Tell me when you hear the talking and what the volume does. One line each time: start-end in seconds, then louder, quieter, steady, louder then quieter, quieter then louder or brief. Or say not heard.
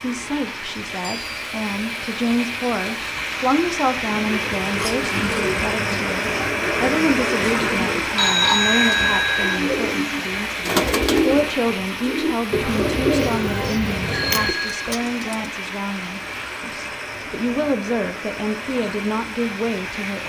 0.0-20.2 steady.